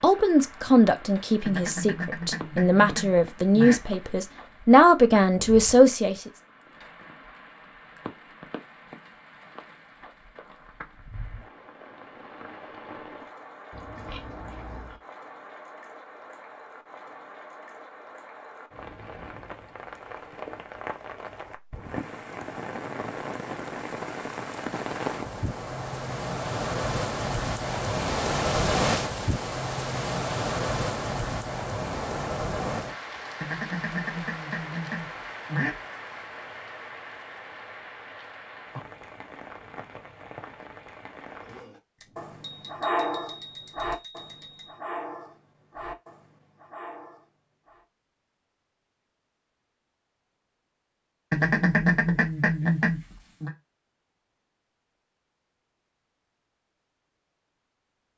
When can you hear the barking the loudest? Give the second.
43 s.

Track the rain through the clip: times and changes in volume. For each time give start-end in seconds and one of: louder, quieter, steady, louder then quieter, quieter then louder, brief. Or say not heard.
0.0-41.6 louder then quieter.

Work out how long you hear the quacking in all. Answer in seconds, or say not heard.
7 s.